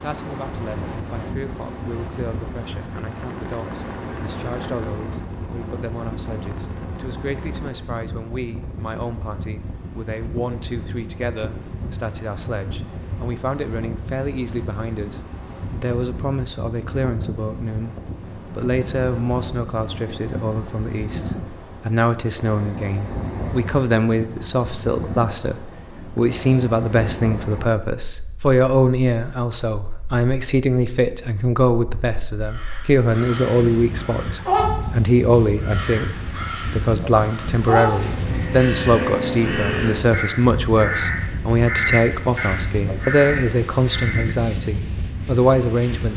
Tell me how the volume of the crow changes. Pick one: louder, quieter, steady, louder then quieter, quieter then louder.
quieter then louder.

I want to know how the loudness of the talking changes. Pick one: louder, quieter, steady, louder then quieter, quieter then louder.
louder.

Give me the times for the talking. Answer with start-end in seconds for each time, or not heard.
0.0-46.1.